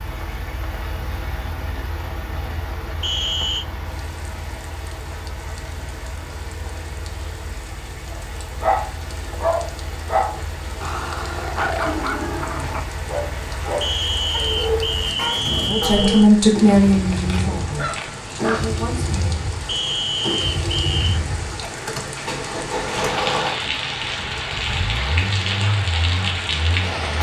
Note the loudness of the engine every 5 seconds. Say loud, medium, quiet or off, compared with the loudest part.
medium, medium, medium, loud, loud, loud.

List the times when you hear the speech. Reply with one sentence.
You can hear the speech from 15.7 to 19.4 s.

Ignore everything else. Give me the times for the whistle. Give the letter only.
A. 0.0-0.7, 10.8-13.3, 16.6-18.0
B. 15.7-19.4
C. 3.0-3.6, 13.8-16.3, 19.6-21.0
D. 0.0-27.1
C.